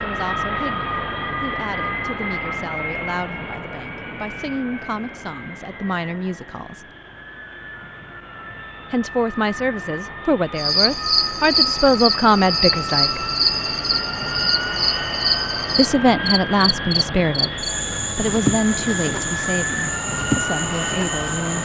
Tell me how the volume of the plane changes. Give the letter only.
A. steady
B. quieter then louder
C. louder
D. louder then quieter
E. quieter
B.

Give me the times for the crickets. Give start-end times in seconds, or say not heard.
10.6-21.6.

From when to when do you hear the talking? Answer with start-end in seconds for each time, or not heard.
0.0-6.8, 8.9-13.2, 15.8-21.6.